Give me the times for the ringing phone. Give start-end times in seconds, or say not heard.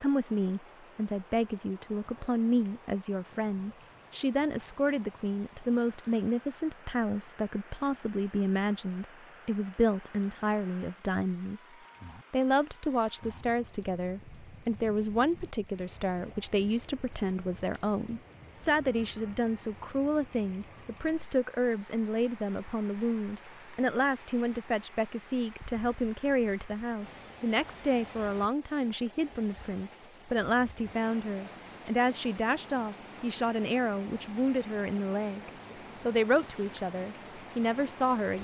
not heard.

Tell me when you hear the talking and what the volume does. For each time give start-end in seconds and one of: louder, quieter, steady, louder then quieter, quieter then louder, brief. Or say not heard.
0.0-11.7 steady
12.3-38.3 steady.